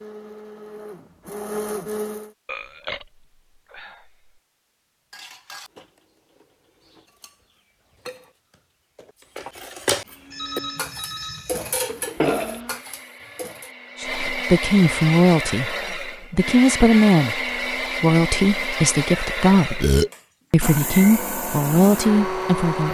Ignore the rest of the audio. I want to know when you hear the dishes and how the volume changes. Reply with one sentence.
You can hear the dishes from 5.1 to 13.7 s, getting louder.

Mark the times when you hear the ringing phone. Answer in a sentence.
You can hear the ringing phone from 10.3 to 11.8 s.